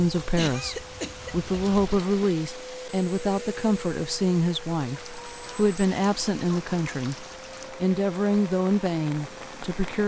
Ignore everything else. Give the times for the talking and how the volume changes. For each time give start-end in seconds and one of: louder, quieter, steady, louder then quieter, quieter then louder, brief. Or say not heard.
0.0-10.0 steady.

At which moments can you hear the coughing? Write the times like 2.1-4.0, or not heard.
0.3-1.4.